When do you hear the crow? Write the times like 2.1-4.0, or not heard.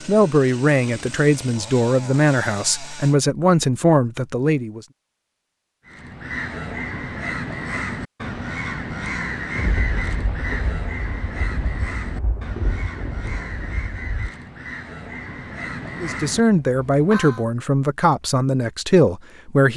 5.8-17.4.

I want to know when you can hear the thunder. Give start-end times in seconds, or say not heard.
9.6-14.3.